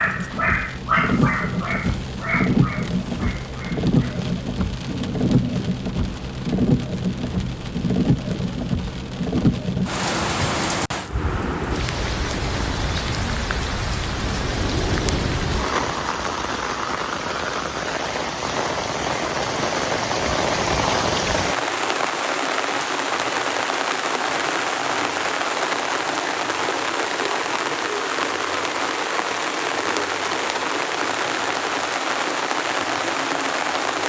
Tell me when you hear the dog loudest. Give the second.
1 s.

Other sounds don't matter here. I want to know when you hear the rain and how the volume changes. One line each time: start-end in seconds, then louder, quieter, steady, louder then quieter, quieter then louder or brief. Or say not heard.
0.0-34.0 steady.